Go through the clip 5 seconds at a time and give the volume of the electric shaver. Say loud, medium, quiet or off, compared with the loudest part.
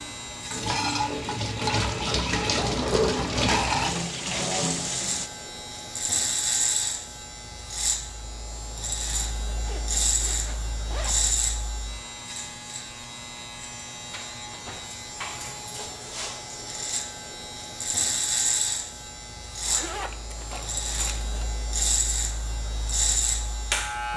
medium, loud, loud, loud, loud.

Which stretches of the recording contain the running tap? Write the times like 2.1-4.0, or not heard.
0.0-5.3.